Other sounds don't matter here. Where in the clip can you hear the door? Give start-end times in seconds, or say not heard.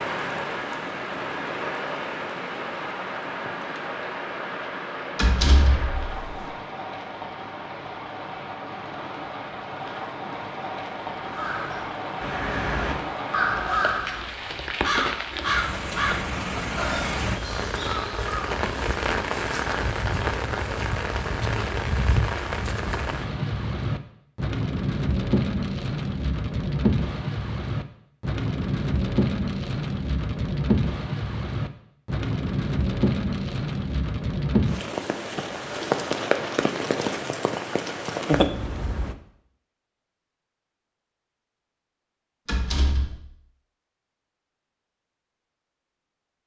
5.2-6.5, 42.5-43.2.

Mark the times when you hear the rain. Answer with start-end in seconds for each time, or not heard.
0.0-39.1.